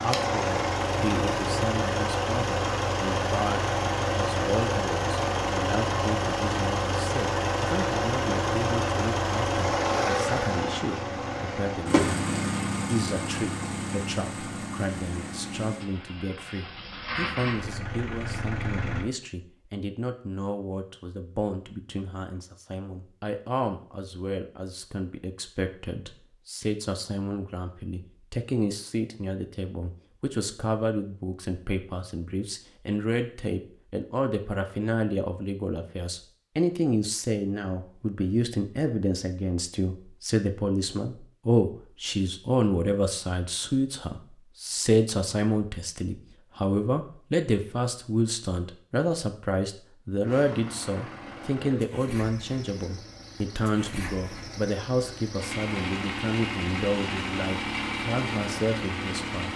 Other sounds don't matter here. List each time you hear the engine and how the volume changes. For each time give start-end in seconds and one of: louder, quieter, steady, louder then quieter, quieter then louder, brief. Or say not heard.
0.0-19.1 quieter
50.2-59.5 louder.